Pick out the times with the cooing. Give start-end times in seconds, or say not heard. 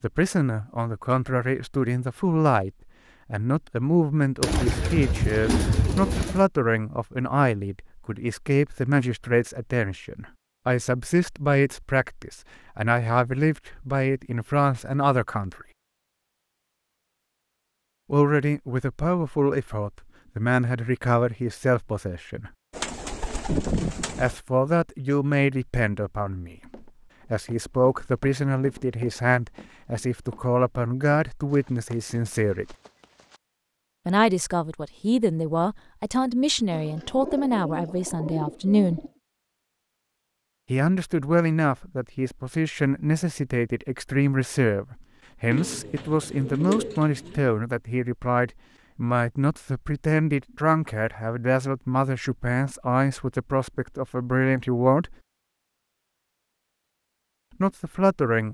4.4-6.5, 22.7-24.4, 36.7-39.1, 45.5-47.5.